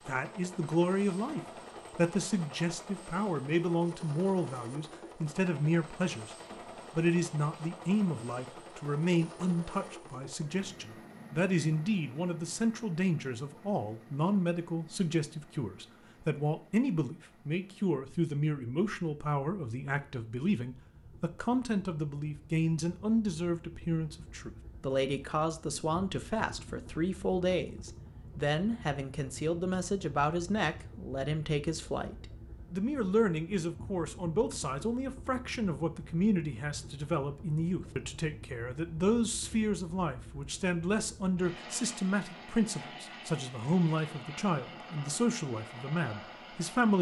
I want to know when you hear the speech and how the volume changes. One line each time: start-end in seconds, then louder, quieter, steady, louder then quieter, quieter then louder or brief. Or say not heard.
0.1-46.9 steady.